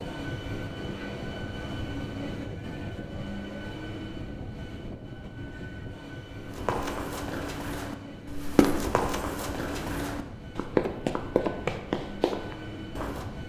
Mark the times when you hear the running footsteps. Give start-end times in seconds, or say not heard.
6.5-13.3.